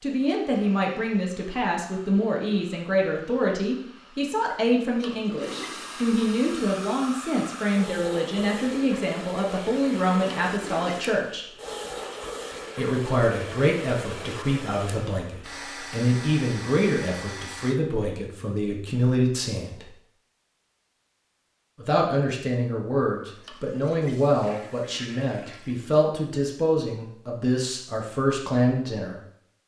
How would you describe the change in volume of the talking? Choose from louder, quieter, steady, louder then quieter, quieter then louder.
steady.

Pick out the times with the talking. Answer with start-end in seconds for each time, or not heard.
0.0-11.4, 12.8-19.9, 21.8-29.2.